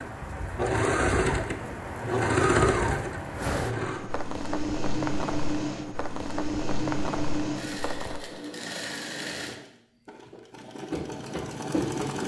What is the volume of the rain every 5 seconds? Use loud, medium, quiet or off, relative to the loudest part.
loud, loud, off.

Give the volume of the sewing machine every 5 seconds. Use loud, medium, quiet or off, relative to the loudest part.
loud, medium, medium.